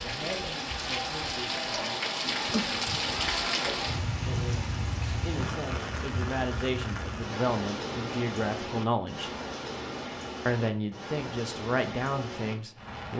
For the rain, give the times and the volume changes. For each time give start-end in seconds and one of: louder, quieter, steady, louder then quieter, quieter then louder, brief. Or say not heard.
0.0-13.1 quieter.